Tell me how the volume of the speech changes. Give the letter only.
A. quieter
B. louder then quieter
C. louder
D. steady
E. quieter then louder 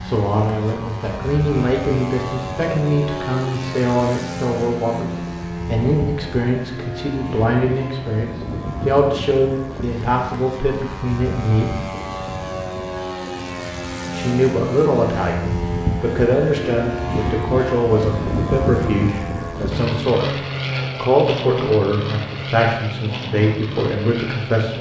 D.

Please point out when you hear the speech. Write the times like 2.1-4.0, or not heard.
0.0-11.8, 14.1-24.7.